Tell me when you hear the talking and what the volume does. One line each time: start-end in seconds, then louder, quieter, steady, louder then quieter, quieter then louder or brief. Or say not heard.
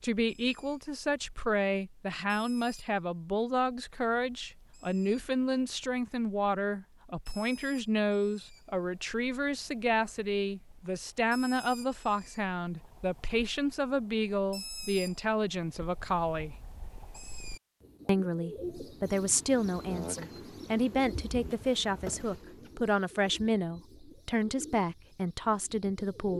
0.0-16.6 steady
18.1-26.3 steady.